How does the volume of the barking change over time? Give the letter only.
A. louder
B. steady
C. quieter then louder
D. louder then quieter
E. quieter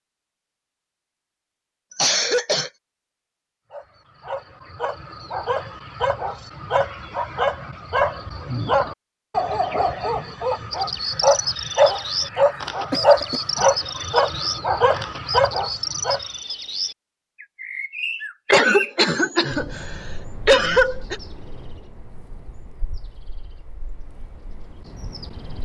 A.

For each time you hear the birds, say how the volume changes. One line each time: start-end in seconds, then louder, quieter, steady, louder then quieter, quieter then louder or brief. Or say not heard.
10.7-25.6 quieter.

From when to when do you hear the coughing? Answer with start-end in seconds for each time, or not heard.
1.9-2.7, 12.9-13.7, 18.4-21.1.